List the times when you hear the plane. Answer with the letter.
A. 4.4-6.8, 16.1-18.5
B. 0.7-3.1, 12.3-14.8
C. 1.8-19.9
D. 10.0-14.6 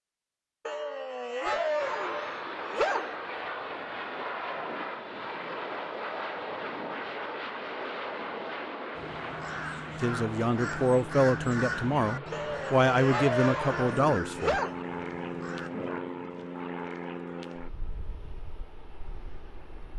C.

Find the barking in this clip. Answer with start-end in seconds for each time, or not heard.
0.7-3.1, 12.3-14.8.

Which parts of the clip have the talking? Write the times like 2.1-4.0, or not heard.
10.0-14.6.